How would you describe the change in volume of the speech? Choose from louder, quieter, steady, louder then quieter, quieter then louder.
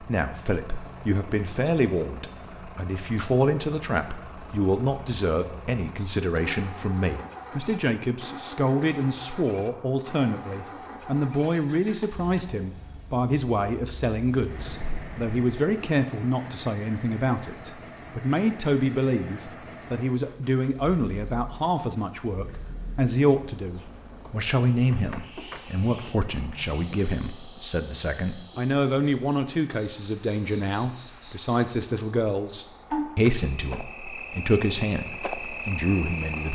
steady.